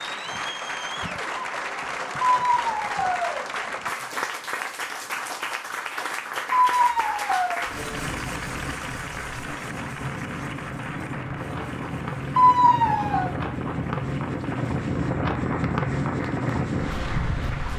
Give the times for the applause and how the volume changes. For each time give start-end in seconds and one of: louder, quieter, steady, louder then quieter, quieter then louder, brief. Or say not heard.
0.0-17.7 quieter.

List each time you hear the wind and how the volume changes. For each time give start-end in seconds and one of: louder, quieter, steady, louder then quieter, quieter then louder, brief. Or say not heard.
7.5-17.7 louder.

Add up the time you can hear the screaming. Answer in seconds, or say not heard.
3 s.